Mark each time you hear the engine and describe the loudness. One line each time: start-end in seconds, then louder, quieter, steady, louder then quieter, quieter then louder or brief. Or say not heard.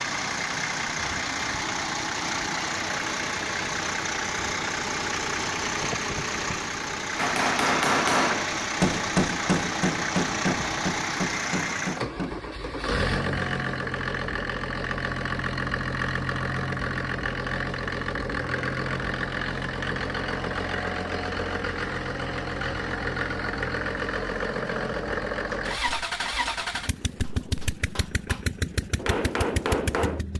0.0-30.3 steady.